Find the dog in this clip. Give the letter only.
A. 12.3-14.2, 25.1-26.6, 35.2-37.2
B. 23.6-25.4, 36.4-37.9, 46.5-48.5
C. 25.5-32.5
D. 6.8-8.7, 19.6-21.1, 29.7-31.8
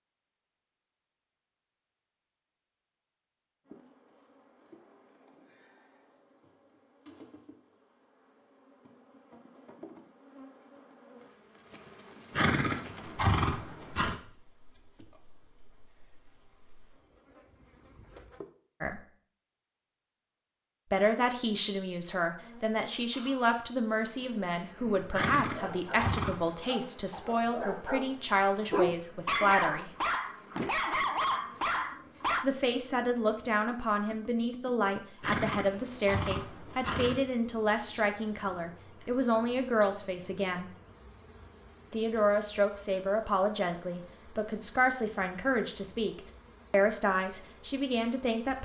C.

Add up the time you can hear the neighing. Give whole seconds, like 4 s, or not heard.
5 s.